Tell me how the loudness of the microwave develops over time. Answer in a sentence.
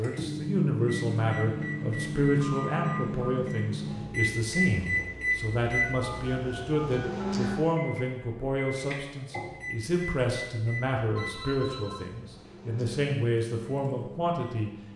The volume of the microwave goes down.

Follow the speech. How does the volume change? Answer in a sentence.
The loudness of the speech stays about the same.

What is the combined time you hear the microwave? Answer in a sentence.
The microwave can be heard for 15 seconds in total.